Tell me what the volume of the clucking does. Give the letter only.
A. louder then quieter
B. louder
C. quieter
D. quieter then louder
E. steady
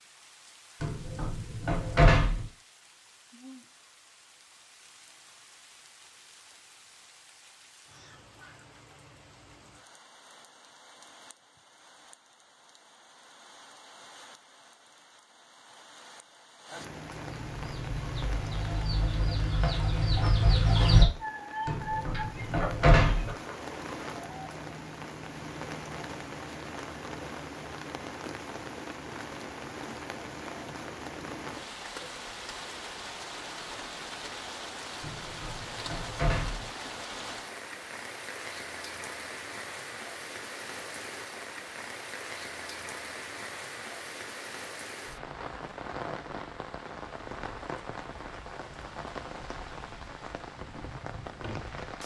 A.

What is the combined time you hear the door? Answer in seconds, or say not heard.
5 s.